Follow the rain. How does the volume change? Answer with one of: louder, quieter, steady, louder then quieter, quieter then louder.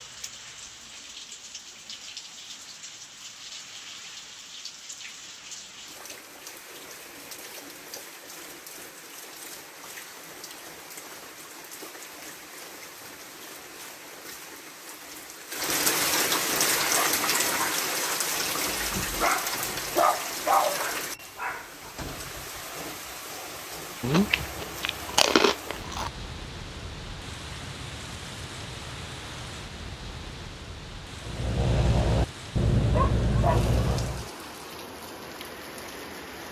louder then quieter.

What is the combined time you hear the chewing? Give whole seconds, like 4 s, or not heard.
2 s.